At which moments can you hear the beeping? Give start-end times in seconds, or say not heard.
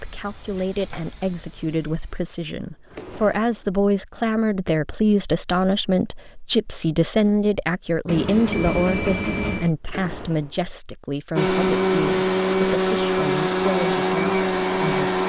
8.1-9.7.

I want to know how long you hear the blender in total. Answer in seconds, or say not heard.
4 s.